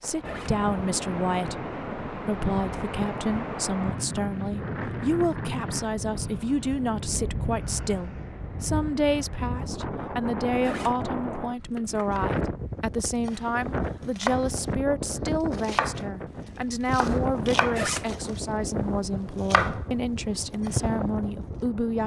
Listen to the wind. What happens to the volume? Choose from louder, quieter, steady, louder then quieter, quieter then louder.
steady.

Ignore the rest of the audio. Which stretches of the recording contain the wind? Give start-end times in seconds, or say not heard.
0.0-22.0.